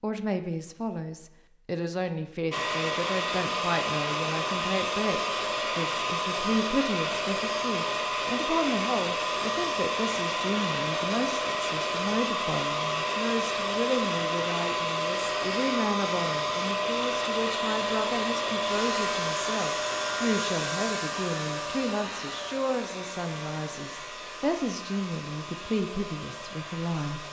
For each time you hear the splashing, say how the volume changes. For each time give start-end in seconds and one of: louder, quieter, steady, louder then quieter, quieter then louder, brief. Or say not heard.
not heard.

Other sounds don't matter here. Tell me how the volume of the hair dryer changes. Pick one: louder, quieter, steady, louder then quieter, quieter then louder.
quieter.